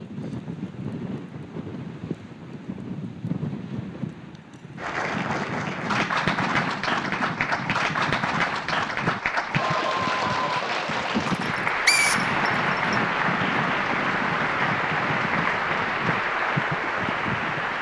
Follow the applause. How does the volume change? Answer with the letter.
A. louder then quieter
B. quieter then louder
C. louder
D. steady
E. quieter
D.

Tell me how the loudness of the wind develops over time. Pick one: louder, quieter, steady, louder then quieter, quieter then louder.
steady.